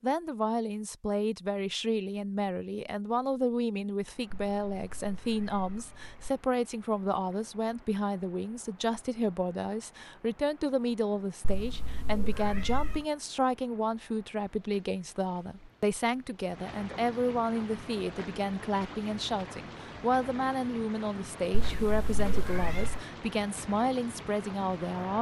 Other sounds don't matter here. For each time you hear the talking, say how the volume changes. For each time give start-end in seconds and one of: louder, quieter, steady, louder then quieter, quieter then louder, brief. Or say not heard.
0.0-25.1 steady.